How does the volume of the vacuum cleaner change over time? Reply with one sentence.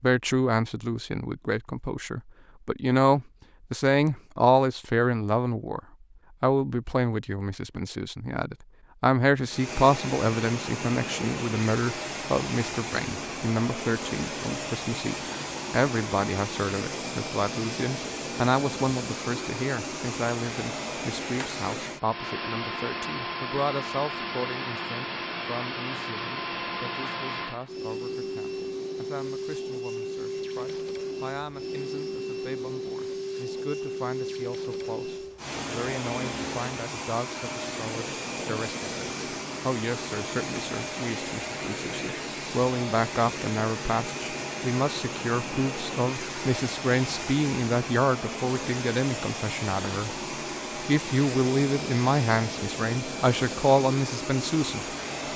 The loudness of the vacuum cleaner stays about the same.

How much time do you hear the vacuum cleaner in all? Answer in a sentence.
The vacuum cleaner can be heard for 46 seconds in total.